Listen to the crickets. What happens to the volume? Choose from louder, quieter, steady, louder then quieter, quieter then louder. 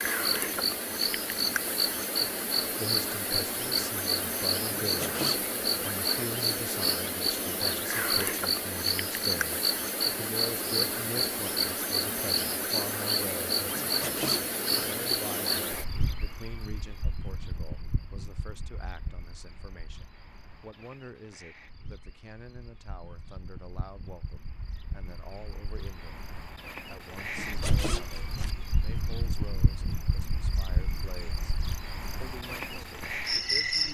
quieter then louder.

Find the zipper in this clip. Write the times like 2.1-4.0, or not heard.
4.7-5.4, 13.8-14.9, 27.4-28.5.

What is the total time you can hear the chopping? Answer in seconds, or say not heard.
not heard.